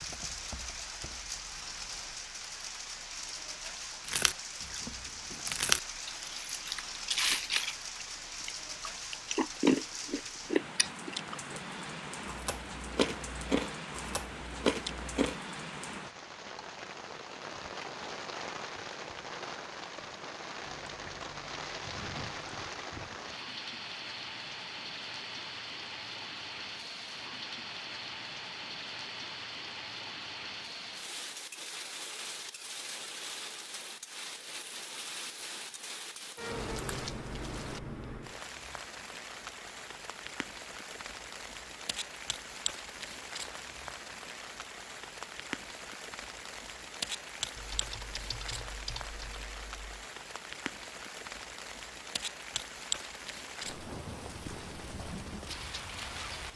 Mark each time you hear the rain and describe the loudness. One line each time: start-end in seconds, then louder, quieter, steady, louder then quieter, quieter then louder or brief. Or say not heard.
0.0-56.5 steady.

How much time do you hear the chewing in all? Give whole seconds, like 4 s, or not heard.
11 s.